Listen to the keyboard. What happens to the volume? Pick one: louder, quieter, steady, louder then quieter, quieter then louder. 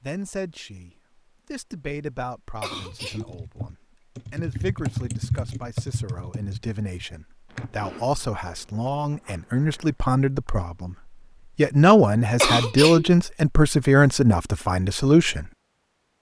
louder then quieter.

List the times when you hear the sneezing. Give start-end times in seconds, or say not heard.
2.6-3.4, 12.4-13.1.